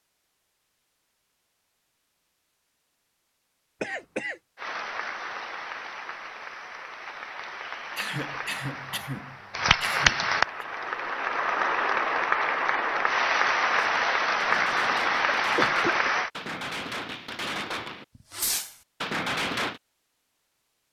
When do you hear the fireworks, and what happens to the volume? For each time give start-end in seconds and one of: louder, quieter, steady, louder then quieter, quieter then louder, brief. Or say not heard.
13.7-19.8 louder.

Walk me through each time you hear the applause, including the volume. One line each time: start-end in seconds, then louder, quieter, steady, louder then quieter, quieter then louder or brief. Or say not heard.
4.5-16.3 louder.